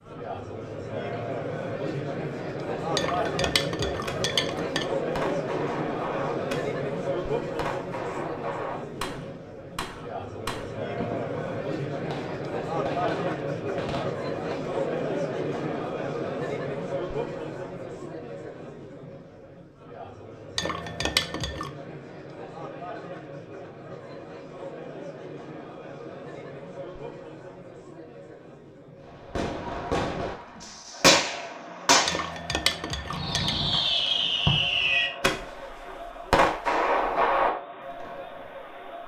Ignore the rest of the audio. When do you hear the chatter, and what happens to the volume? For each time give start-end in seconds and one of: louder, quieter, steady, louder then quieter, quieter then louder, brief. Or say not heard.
0.0-39.0 quieter.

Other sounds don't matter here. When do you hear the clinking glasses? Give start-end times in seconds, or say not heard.
3.0-4.8, 20.6-21.7, 32.0-33.5.